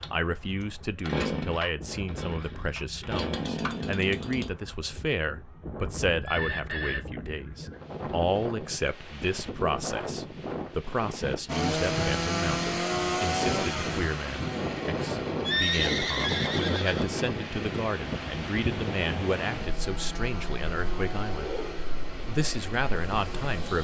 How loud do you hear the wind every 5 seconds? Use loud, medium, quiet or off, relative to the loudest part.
quiet, medium, loud, loud, medium.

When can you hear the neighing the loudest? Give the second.
16 s.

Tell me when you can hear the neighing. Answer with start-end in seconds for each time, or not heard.
6.2-7.0, 15.4-17.1.